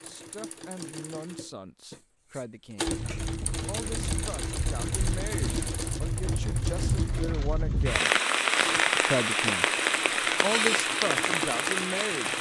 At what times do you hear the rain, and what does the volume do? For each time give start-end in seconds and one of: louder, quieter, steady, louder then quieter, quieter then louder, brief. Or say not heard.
2.9-12.3 louder.